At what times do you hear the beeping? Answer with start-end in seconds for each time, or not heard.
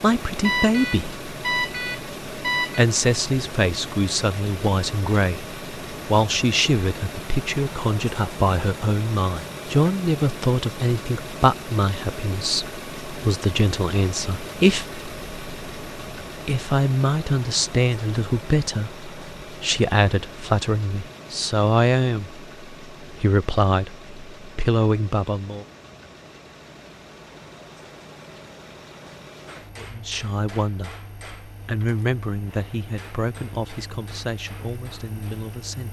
0.4-2.9.